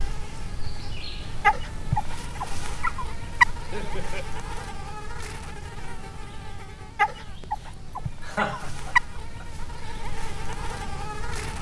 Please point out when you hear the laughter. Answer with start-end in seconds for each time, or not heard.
3.5-4.2, 8.2-9.4.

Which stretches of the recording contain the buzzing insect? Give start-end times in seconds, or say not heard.
0.0-11.5.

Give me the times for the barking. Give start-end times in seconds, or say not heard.
1.4-3.5, 7.0-9.0.